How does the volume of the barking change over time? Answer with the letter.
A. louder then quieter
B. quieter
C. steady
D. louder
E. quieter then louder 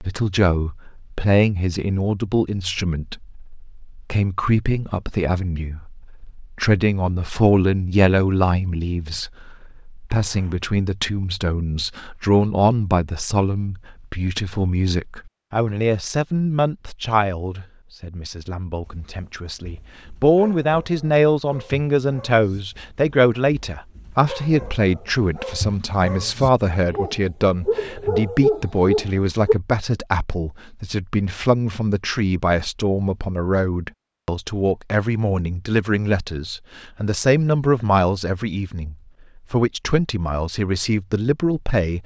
D.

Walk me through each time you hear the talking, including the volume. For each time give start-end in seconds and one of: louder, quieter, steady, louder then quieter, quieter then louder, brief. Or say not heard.
0.0-42.0 steady.